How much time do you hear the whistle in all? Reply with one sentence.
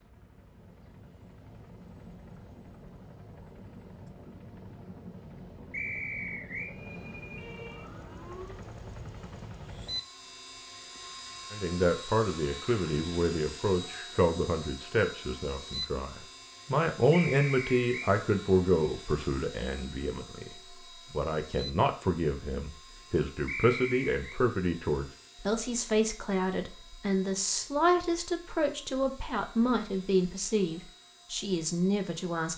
You can hear the whistle for 3 seconds altogether.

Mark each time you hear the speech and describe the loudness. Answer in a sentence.
You can hear the speech from 11.5 to 32.5 s, at a steady volume.